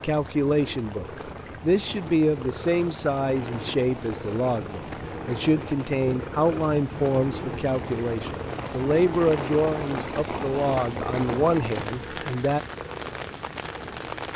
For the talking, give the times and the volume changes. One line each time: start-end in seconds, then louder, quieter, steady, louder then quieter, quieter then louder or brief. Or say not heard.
0.0-12.6 steady.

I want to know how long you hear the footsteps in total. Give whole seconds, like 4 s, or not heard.
not heard.